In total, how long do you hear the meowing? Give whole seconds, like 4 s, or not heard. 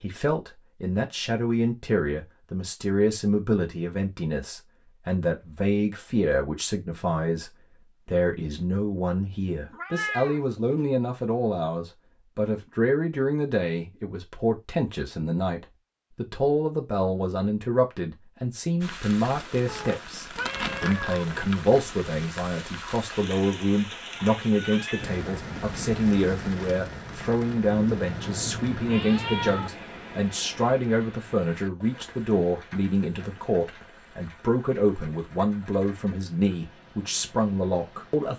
5 s.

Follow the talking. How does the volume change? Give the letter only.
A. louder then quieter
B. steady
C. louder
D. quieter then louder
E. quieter
B.